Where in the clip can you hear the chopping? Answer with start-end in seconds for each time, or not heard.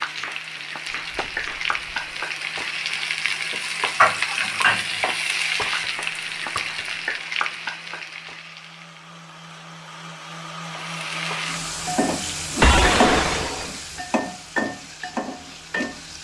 0.0-1.8.